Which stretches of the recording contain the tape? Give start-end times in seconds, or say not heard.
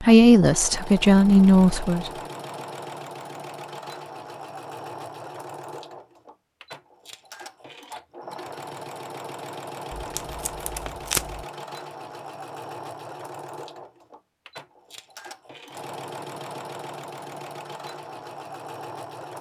9.9-11.4.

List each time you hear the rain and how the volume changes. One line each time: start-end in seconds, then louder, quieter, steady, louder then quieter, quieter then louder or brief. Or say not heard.
not heard.